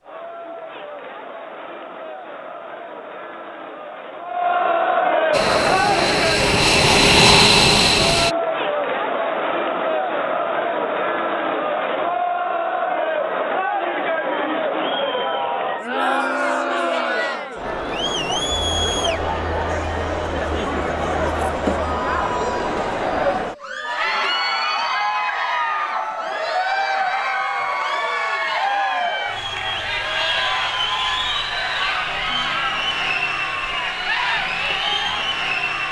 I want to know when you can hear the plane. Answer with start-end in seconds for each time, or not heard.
5.3-8.3.